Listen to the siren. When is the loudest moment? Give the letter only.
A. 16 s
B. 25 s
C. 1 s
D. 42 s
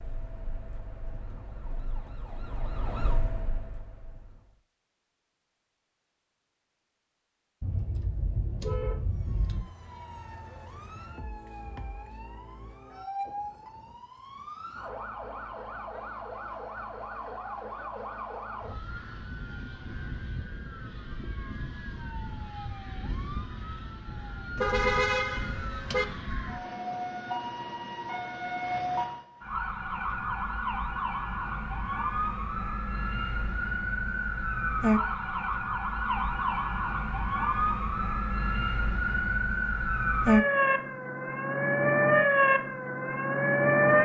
D.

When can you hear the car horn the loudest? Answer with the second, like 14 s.
25 s.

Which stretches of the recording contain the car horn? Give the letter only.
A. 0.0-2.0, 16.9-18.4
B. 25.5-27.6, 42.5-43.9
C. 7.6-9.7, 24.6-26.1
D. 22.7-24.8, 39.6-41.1
C.